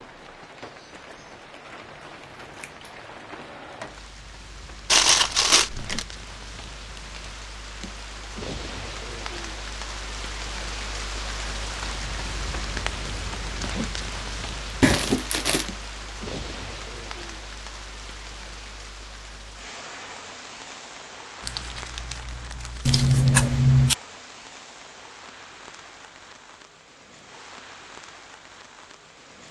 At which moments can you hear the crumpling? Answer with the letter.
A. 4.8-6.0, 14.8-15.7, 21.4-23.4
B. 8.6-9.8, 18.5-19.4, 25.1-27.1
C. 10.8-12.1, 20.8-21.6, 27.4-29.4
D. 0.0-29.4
A.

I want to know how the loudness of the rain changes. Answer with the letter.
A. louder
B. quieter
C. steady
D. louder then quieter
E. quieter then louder
D.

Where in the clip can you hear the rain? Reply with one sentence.
You can hear the rain from 0.0 to 29.4 s.